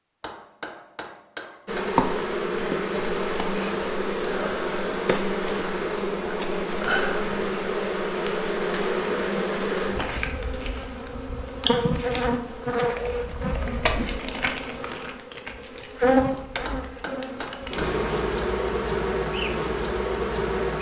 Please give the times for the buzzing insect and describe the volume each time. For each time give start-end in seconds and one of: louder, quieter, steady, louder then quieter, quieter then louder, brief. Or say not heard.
1.6-20.7 steady.